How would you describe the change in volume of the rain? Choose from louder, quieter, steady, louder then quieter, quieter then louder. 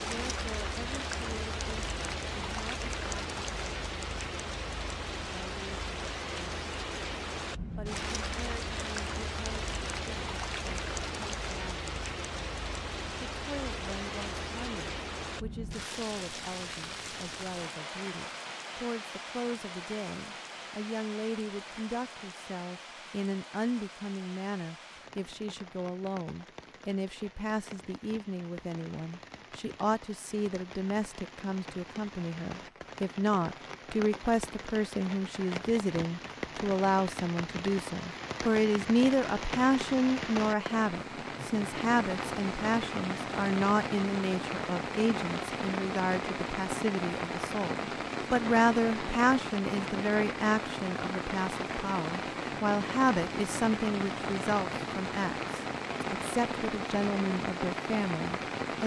quieter then louder.